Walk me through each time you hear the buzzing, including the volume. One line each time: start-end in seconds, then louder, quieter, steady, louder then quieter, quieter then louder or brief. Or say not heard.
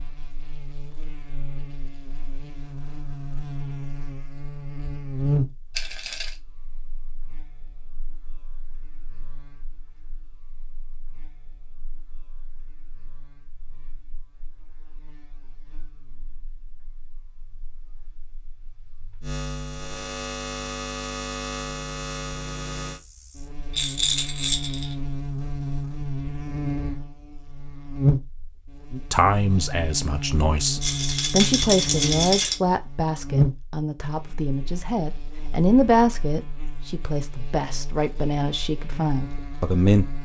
0.0-40.2 quieter then louder.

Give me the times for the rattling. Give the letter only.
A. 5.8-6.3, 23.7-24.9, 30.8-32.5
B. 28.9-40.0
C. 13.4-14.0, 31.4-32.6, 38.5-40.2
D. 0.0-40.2
A.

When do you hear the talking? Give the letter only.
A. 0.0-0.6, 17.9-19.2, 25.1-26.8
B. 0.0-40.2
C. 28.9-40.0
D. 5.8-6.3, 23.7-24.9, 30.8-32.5
C.